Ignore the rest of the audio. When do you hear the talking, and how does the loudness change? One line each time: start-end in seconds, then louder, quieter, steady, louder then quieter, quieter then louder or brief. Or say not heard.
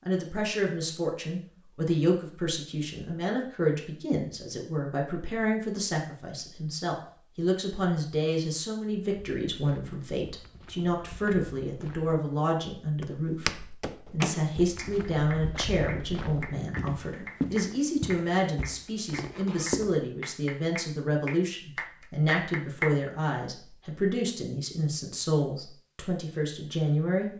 0.1-27.3 steady.